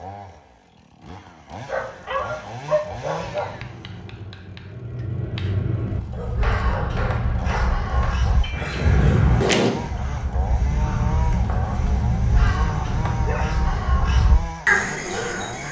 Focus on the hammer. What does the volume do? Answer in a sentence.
The loudness of the hammer goes up, then down.